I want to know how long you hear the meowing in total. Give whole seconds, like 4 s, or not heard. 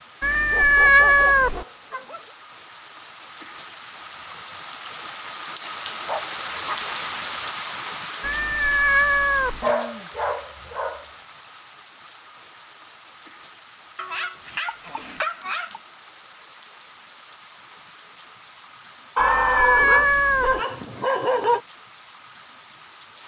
4 s.